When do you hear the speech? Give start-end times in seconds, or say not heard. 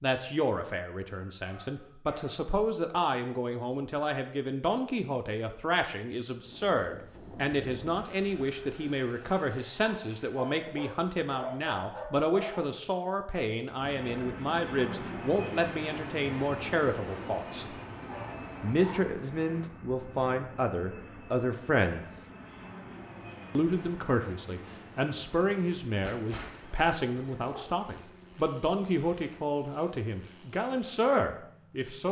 0.0-17.6, 18.6-22.2, 23.6-32.0.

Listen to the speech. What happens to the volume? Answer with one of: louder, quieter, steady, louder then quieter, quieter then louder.
steady.